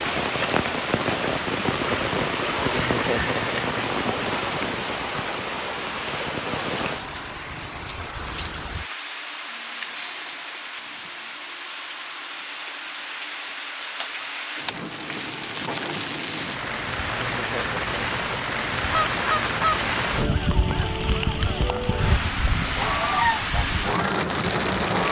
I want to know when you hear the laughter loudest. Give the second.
3 s.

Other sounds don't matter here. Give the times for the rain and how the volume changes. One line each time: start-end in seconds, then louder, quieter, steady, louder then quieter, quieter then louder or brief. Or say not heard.
0.0-25.0 quieter then louder.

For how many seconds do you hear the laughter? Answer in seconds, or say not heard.
2 s.